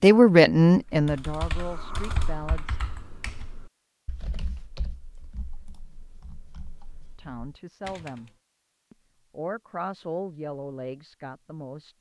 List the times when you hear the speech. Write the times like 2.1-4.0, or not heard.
0.0-2.8, 7.2-8.3, 8.9-11.9.